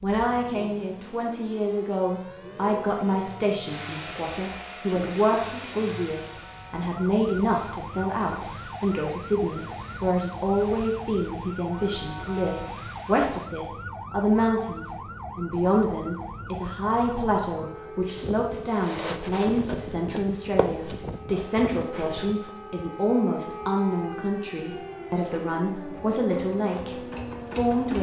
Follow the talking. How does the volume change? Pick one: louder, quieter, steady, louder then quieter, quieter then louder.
steady.